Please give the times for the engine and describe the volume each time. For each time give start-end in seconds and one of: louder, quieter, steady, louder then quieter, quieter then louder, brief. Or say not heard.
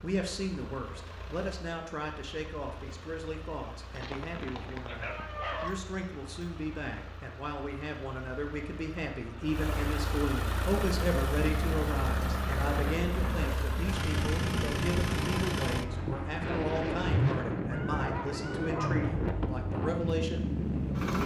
0.0-21.2 louder.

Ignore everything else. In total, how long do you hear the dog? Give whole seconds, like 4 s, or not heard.
3 s.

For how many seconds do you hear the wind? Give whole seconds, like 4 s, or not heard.
11 s.